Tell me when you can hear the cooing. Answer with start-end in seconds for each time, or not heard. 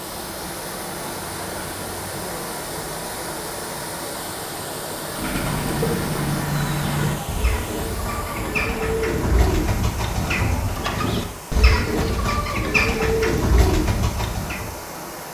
5.1-14.8.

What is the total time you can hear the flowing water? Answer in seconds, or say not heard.
15 s.